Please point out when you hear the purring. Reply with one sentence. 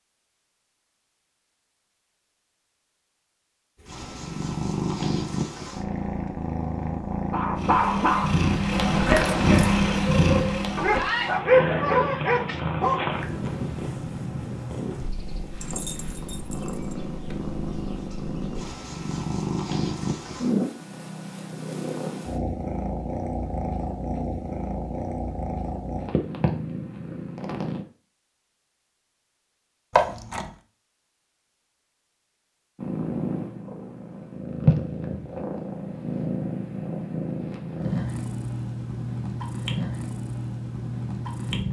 You can hear the purring from 3.8 to 27.9 s and from 32.8 to 41.6 s.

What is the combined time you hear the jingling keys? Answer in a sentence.
You can hear the jingling keys for 3 seconds altogether.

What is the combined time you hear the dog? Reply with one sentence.
You can hear the dog for 6 seconds altogether.